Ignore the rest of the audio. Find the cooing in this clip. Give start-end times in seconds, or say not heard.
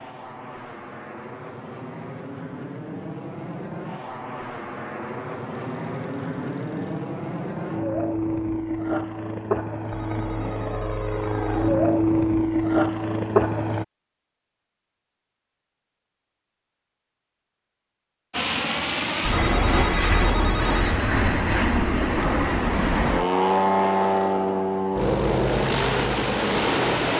not heard.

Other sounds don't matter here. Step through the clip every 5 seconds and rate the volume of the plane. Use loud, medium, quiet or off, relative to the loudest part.
quiet, medium, loud, loud, loud, loud.